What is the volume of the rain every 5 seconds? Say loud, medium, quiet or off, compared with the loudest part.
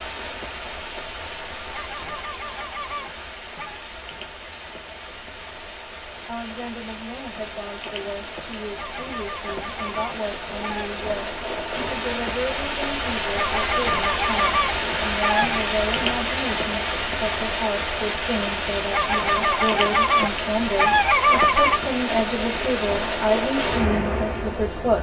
medium, medium, loud, loud, loud.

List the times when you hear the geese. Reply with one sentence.
You can hear the geese from 1.7 to 3.8 s, from 8.8 to 10.9 s, from 13.3 to 15.7 s and from 18.9 to 21.8 s.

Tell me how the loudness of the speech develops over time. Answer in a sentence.
The loudness of the speech goes up.